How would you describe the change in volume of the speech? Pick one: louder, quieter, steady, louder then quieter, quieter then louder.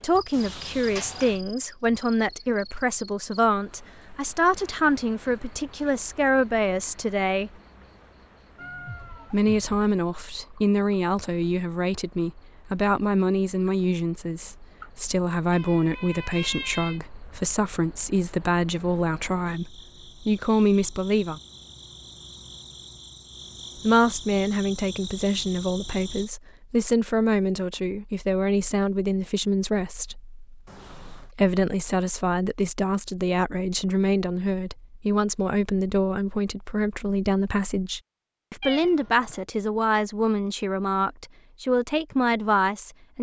steady.